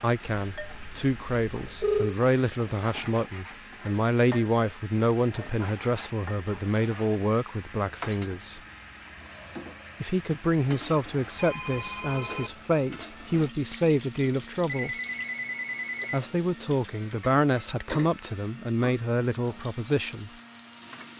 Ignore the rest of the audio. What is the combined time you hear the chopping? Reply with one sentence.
The chopping can't be heard in this clip.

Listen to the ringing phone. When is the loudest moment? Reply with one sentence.
The volume of the ringing phone peaks at 2 seconds.